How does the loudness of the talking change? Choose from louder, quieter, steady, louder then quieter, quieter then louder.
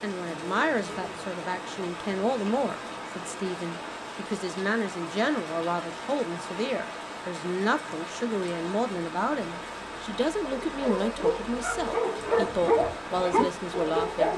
steady.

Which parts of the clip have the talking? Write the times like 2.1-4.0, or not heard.
0.0-14.3.